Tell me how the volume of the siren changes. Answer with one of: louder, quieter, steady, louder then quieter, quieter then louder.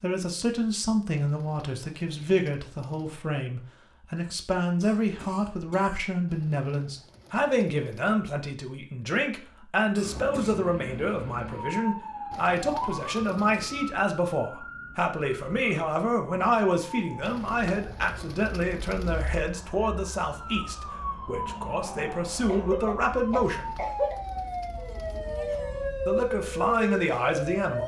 quieter then louder.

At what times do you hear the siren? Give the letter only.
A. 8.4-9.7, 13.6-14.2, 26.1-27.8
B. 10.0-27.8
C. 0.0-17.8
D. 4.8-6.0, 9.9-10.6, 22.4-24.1
B.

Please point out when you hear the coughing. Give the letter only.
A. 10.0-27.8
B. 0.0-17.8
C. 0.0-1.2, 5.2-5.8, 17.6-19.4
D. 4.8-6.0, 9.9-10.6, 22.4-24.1
D.